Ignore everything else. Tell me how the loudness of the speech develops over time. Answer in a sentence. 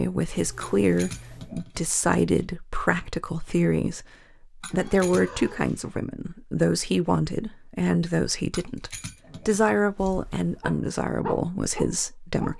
The volume of the speech stays about the same.